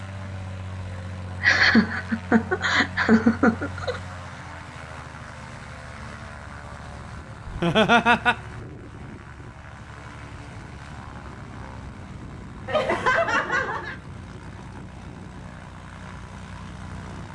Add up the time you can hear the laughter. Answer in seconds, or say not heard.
5 s.